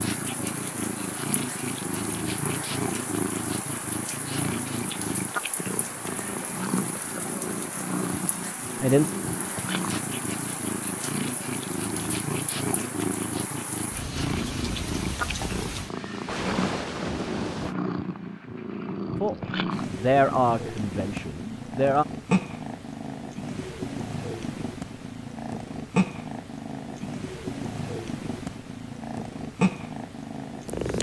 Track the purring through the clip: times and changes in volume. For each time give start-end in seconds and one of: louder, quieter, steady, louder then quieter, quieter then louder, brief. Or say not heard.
0.0-30.9 steady.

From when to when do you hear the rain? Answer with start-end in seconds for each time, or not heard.
0.0-17.8.